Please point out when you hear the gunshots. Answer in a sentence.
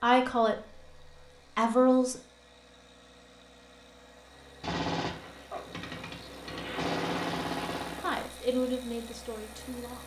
You can hear the gunshots from 4.6 to 8.3 s.